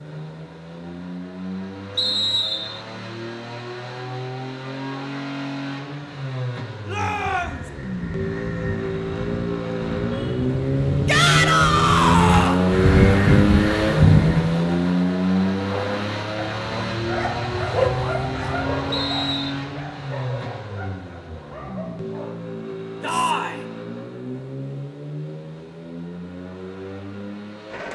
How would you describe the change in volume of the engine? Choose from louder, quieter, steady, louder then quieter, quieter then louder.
louder then quieter.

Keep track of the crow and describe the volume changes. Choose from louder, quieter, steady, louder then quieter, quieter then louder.
louder.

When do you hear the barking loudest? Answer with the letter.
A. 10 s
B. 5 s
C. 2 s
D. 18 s
D.